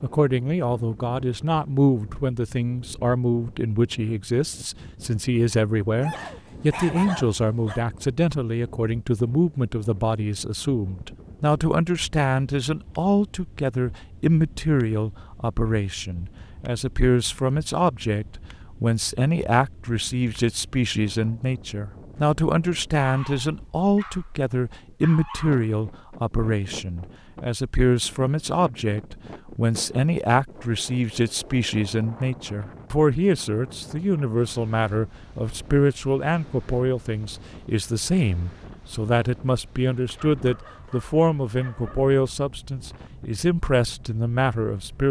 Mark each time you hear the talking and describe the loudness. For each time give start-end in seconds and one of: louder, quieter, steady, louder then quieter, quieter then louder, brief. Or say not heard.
0.0-45.0 steady.